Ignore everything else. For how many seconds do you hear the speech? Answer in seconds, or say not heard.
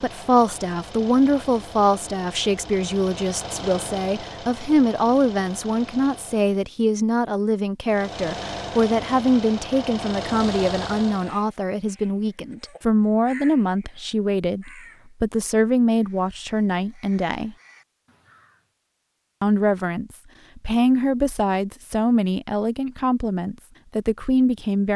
23 s.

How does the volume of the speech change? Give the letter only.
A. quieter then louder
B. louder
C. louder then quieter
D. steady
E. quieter
D.